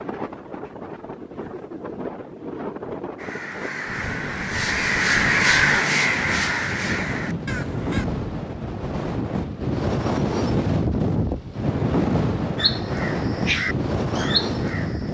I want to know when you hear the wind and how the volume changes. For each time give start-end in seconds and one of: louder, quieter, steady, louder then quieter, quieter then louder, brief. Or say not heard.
0.0-15.0 louder.